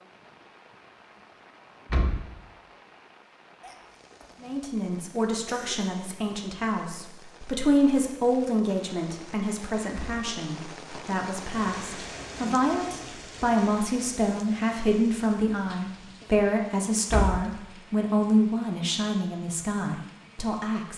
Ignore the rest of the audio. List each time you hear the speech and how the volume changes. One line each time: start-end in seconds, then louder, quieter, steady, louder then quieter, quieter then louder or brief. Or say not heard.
4.4-20.9 steady.